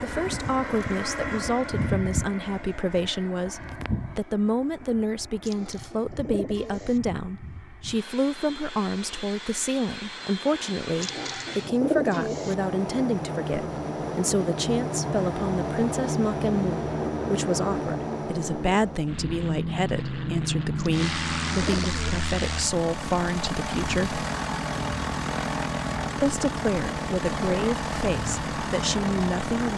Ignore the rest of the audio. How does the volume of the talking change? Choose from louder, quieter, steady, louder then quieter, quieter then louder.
steady.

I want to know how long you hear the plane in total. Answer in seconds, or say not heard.
30 s.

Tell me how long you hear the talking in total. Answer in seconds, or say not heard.
28 s.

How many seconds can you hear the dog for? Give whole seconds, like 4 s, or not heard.
not heard.